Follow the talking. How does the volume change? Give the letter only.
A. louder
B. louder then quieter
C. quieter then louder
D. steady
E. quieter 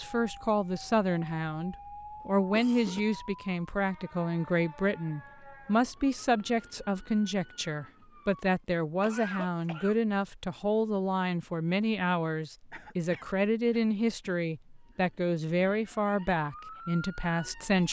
D.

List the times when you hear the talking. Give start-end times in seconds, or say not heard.
0.0-17.8.